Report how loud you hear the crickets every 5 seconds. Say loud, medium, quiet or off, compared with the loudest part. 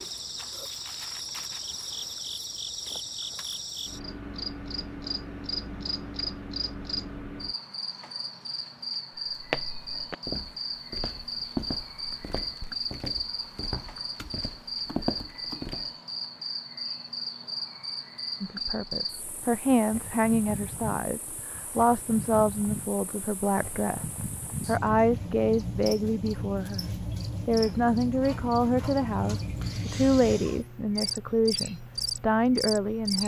loud, loud, loud, loud, medium, loud, loud.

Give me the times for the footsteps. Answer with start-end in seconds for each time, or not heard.
9.3-15.9.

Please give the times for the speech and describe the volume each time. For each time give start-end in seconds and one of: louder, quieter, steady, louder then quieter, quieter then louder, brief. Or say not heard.
18.4-33.2 steady.